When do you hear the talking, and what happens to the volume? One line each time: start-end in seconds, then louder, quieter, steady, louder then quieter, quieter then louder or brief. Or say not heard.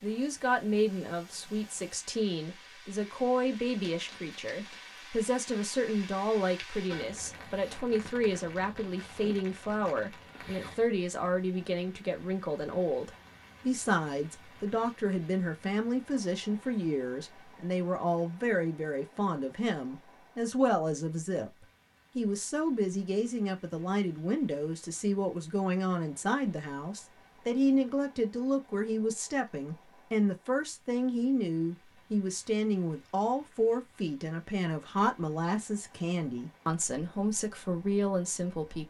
0.0-38.8 steady.